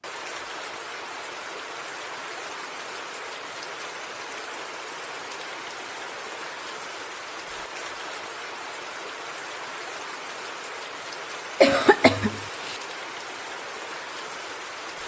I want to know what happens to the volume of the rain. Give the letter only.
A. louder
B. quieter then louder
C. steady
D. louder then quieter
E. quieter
C.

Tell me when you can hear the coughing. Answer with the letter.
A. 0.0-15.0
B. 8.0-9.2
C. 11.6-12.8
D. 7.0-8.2
C.